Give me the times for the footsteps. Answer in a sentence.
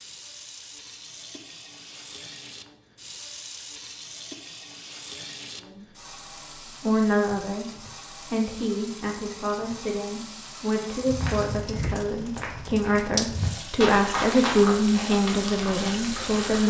You can hear the footsteps from 11.1 to 16.6 s.